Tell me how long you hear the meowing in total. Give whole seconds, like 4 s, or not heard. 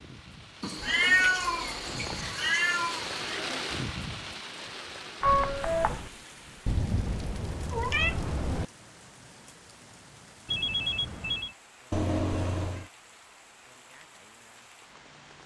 6 s.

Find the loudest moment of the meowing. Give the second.
1 s.